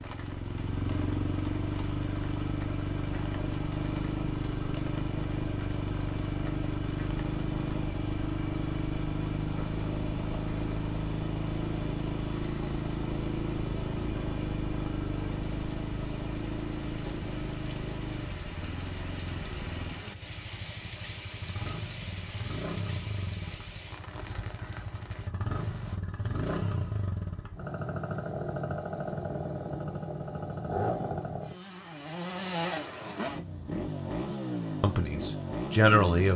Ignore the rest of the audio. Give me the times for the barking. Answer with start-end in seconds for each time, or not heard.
not heard.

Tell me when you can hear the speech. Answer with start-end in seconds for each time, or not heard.
34.8-36.3.